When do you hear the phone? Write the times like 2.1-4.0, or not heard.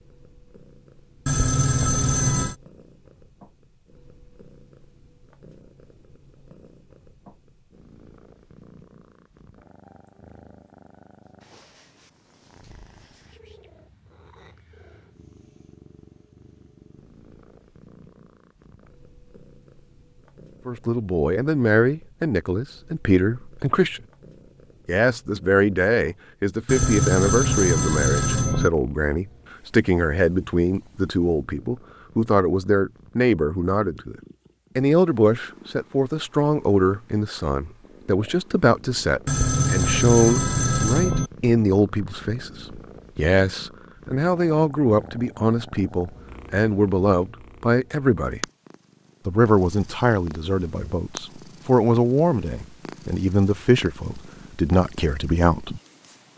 1.2-2.5, 26.6-28.7, 39.2-41.3.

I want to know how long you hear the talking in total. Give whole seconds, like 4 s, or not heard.
33 s.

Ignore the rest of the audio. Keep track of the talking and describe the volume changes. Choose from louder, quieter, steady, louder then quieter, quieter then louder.
steady.